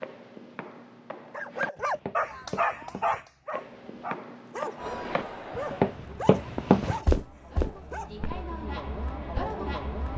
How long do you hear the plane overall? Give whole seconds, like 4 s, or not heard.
not heard.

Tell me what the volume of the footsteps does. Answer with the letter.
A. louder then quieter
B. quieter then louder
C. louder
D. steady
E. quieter
C.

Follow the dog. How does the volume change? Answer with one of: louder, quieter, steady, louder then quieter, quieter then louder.
quieter.